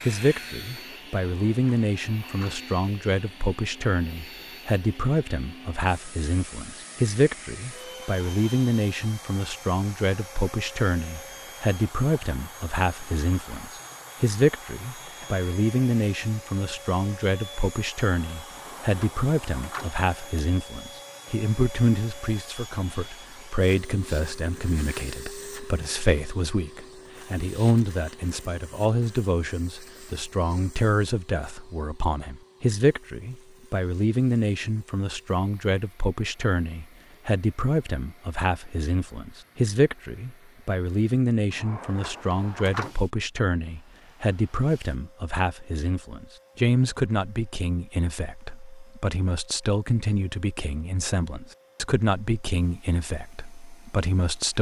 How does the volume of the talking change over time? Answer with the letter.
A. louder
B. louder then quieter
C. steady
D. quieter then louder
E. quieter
C.